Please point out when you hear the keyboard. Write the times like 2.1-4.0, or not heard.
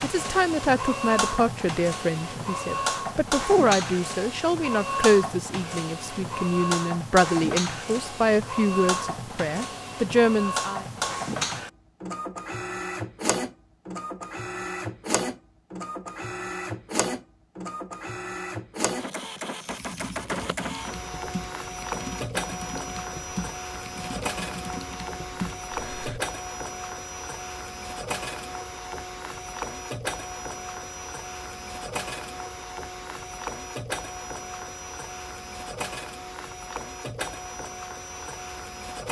19.6-26.2.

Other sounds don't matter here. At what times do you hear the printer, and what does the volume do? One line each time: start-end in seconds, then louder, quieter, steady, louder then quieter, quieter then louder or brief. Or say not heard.
0.0-39.0 quieter.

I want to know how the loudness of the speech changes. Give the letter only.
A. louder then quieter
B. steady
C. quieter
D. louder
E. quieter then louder
B.